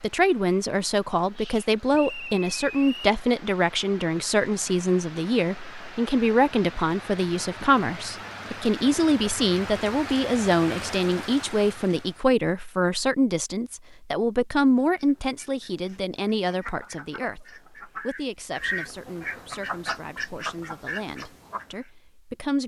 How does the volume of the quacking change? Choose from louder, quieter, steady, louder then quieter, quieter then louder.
louder.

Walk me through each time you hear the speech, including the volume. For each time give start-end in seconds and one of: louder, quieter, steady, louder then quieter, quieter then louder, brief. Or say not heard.
0.0-22.6 quieter.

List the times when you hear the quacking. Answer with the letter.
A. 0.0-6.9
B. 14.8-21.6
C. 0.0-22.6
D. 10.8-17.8
B.